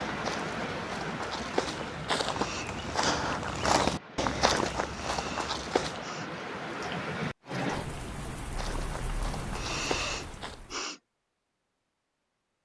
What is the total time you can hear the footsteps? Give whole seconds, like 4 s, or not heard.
8 s.